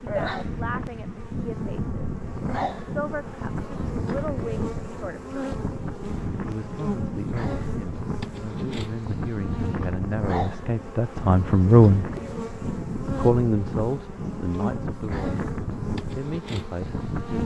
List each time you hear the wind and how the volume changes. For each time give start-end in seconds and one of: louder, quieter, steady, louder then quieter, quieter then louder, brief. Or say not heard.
0.0-17.4 steady.